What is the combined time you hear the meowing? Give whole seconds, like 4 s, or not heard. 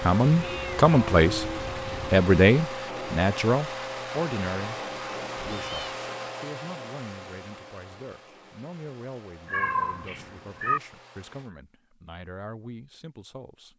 4 s.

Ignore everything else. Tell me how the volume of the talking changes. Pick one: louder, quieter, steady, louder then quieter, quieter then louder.
quieter.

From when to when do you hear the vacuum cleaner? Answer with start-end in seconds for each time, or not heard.
0.0-11.5.